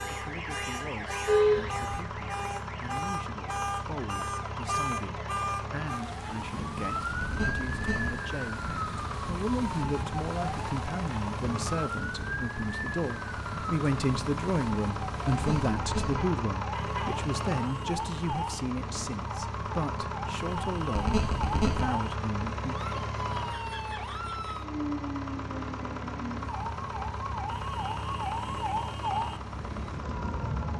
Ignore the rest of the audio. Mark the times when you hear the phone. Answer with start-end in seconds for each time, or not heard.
7.2-8.1, 15.2-16.1, 20.9-21.9.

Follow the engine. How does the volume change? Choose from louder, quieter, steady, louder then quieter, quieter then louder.
steady.